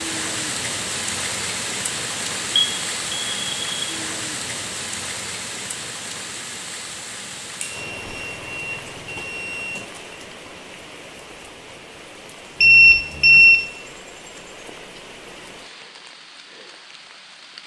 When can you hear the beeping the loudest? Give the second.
13 s.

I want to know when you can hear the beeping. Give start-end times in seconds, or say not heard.
2.5-3.8, 7.6-10.0, 12.6-13.6.